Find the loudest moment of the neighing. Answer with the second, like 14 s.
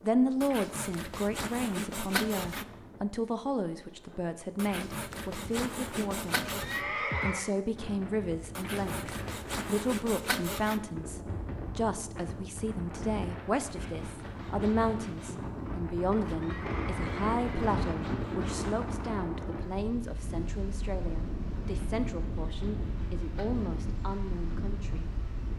7 s.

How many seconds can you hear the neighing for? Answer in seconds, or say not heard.
3 s.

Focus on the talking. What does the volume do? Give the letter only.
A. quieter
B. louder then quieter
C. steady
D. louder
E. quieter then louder
A.